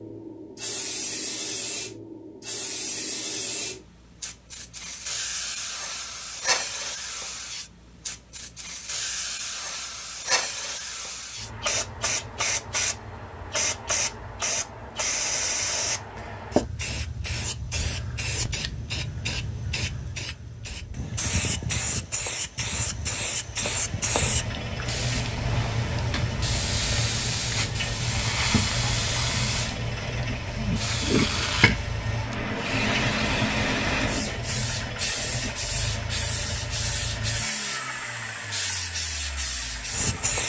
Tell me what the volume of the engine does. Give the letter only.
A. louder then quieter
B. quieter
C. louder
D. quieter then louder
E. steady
E.